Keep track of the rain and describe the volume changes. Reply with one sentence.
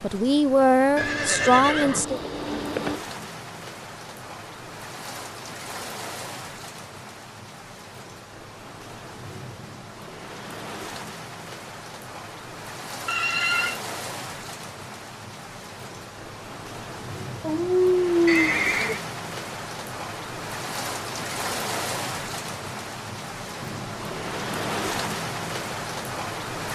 The volume of the rain goes up.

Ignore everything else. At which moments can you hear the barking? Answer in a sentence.
The barking can be heard from 17.4 to 18.9 s.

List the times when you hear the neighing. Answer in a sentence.
You can hear the neighing from 0.9 to 3.0 s, from 13.1 to 13.8 s and from 18.2 to 19.0 s.